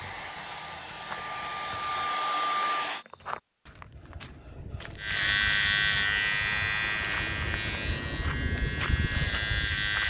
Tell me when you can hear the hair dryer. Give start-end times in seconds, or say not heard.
0.0-3.0.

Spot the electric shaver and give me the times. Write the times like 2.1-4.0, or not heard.
5.0-10.0.